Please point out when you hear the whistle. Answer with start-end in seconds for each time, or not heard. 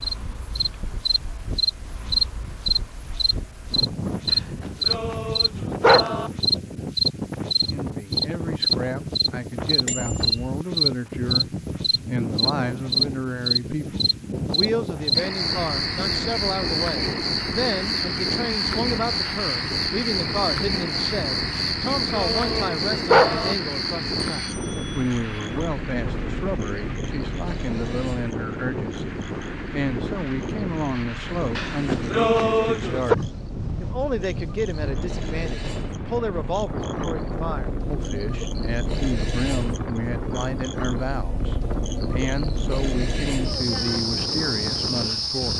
not heard.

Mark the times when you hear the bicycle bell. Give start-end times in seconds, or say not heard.
9.8-10.5, 24.4-25.6.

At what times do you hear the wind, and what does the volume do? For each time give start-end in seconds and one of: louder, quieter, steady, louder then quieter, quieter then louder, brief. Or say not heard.
0.0-45.5 steady.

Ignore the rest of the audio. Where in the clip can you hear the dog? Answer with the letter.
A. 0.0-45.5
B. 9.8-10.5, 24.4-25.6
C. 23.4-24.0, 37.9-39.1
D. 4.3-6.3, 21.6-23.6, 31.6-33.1
D.